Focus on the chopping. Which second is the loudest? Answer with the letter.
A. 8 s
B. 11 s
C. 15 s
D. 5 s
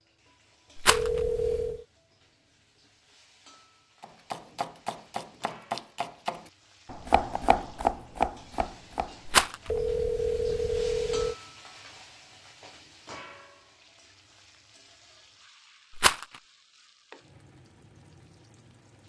A.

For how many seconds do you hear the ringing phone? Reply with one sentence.
The ringing phone can be heard for 3 seconds in total.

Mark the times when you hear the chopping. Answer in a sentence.
The chopping can be heard from 4.0 to 9.8 s.